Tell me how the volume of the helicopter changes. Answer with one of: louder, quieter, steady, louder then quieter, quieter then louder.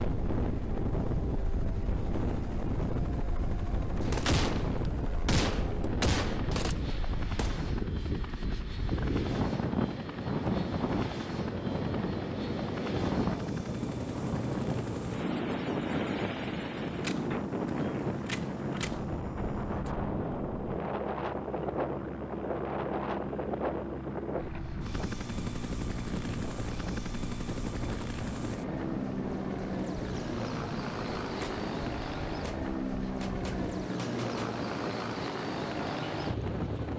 louder.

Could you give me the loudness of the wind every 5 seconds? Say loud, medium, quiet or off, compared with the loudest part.
loud, loud, loud, loud, loud, medium, medium, medium.